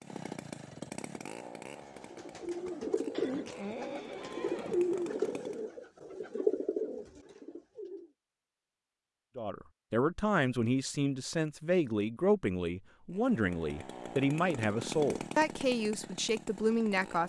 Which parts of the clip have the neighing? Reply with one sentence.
The neighing can be heard from 3.1 to 4.8 s.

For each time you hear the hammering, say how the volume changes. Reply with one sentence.
You can't hear the hammering here.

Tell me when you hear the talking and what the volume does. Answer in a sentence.
The talking can be heard from 9.3 to 17.2 s, at a steady volume.